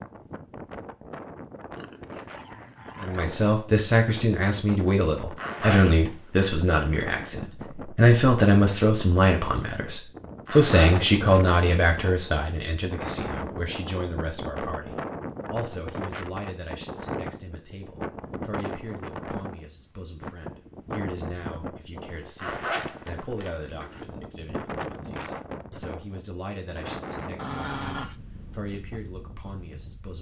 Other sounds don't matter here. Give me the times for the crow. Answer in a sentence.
You can't hear the crow here.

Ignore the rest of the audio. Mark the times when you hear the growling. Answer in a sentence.
You can hear the growling from 1.8 to 3.4 s and from 27.4 to 28.1 s.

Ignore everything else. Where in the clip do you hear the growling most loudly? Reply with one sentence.
The volume of the growling peaks at 28 seconds.